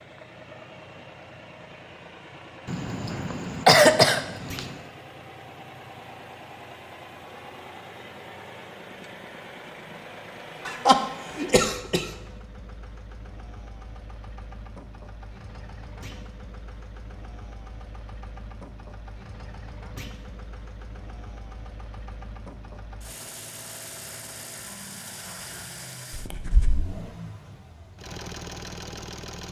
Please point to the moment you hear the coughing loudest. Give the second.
4 s.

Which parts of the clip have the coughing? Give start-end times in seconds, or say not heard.
2.6-4.7, 10.7-12.1, 26.1-26.9.